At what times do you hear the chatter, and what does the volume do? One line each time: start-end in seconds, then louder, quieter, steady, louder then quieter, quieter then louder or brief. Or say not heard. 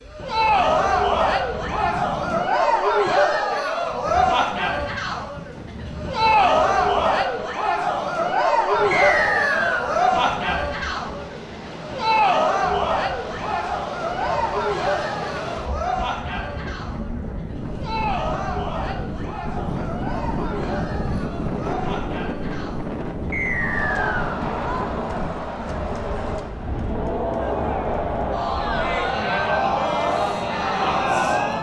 0.1-31.5 quieter then louder.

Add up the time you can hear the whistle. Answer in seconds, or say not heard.
2 s.